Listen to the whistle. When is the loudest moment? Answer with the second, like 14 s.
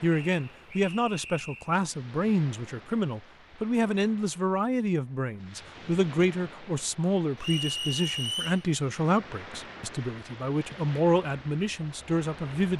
8 s.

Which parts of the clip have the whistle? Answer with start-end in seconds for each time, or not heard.
0.3-1.8, 7.4-8.7.